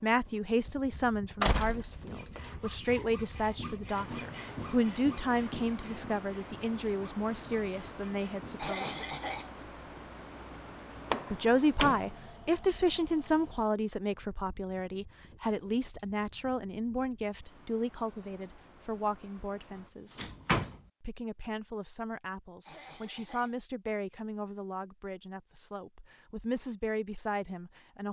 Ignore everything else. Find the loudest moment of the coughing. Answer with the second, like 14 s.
9 s.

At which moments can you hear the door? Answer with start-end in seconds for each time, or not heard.
1.4-2.4, 11.1-12.2, 20.1-20.8.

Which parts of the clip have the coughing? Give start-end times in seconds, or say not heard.
8.6-9.5, 22.6-23.6.